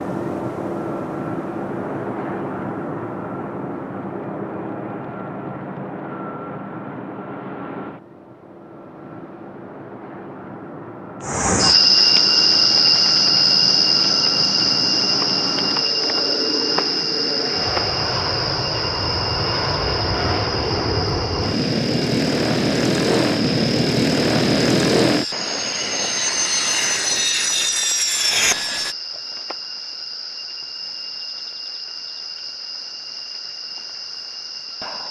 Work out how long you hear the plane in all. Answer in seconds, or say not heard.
29 s.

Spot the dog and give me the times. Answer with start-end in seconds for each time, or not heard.
not heard.